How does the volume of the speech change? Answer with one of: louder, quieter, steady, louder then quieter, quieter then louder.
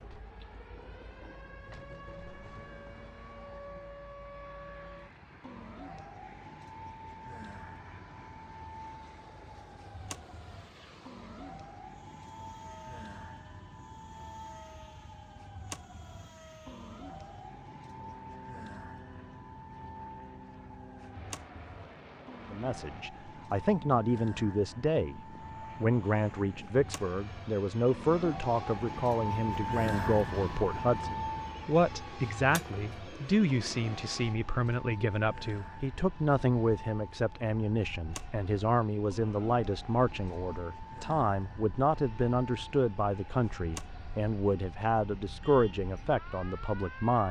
steady.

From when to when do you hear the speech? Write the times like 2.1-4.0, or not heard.
22.5-47.2.